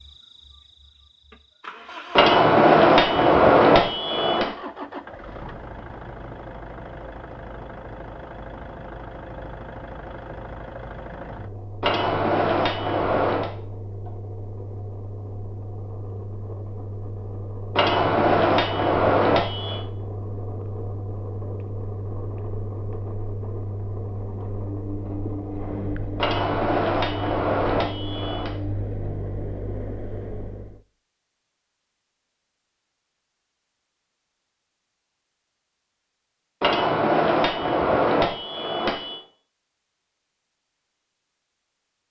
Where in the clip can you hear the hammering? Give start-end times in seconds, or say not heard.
2.1-4.5, 11.8-13.5, 17.8-19.8, 26.1-28.5, 36.6-39.2.